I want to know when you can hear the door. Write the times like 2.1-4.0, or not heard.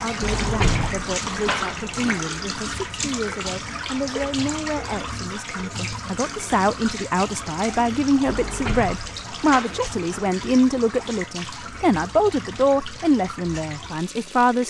0.2-2.2, 8.2-10.3.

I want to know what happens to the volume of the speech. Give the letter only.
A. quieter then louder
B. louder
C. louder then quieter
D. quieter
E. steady
B.